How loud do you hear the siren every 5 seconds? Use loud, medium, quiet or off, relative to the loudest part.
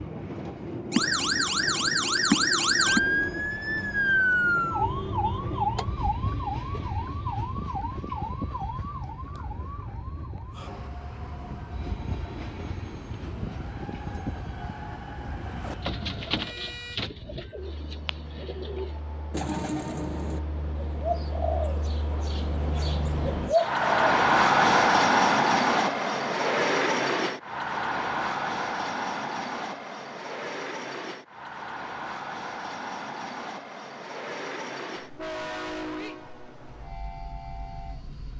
loud, medium, quiet, quiet, off, off, off, off.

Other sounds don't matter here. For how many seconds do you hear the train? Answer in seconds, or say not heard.
38 s.